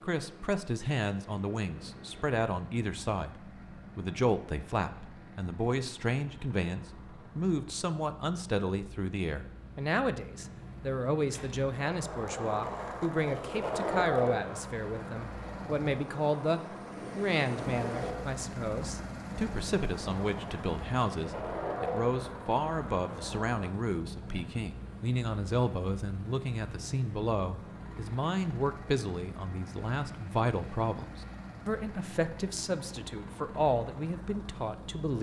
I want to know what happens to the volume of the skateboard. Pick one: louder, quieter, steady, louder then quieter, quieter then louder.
quieter then louder.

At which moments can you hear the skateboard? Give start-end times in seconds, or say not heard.
11.2-23.6.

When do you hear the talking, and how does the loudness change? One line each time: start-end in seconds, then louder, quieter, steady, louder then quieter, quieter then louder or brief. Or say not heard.
0.0-35.1 steady.